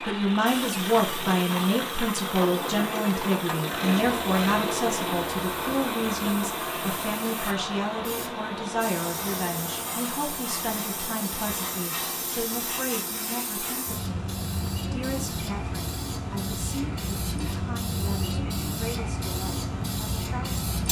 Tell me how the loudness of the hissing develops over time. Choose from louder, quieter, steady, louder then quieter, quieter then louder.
louder.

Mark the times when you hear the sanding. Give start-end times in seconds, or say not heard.
not heard.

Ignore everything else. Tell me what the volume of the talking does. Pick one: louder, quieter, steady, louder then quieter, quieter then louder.
quieter.